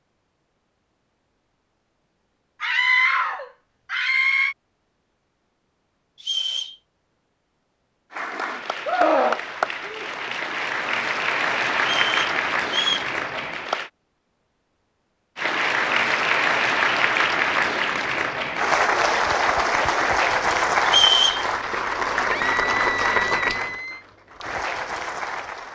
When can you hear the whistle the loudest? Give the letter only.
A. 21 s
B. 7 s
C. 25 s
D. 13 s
A.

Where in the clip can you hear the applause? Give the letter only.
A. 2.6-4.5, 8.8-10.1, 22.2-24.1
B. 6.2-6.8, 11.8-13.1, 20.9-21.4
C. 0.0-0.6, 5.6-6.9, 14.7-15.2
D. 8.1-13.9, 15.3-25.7
D.